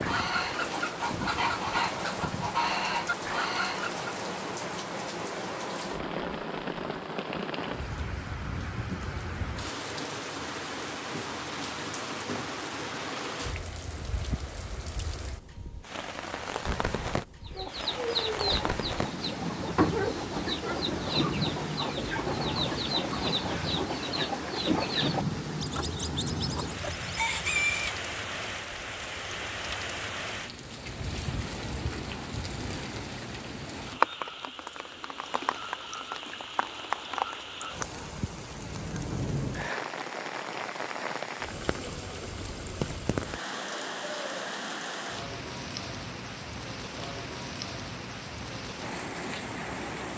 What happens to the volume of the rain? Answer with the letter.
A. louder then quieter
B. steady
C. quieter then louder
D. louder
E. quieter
B.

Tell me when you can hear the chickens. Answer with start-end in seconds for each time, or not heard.
0.0-4.0, 17.4-28.1.